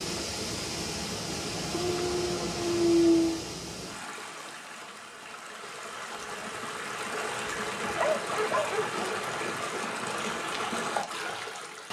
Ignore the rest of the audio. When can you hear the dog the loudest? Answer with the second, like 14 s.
3 s.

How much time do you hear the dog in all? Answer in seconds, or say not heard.
3 s.